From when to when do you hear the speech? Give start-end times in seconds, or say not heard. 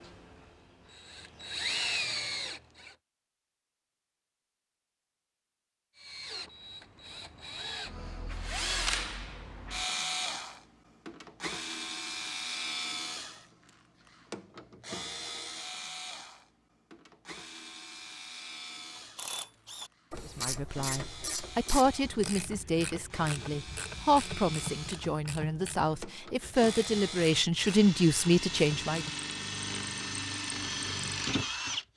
20.2-29.0.